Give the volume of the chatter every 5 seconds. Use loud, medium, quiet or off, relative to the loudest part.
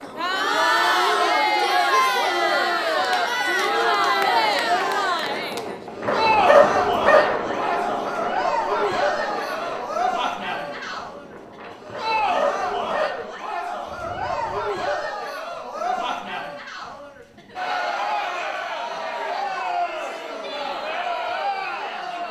loud, loud, medium, medium, medium.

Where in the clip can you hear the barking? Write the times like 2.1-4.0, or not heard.
6.0-7.4, 11.9-13.2.